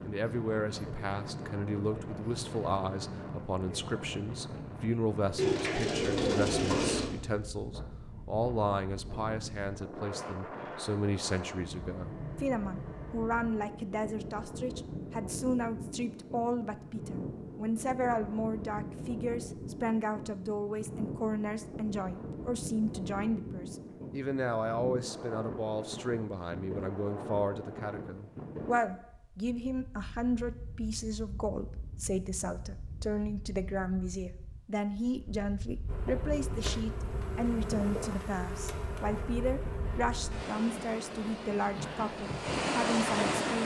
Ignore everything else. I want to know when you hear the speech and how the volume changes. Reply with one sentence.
The speech can be heard from 0.0 to 43.6 s, at a steady volume.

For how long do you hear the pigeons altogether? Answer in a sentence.
You can hear the pigeons for 2 seconds altogether.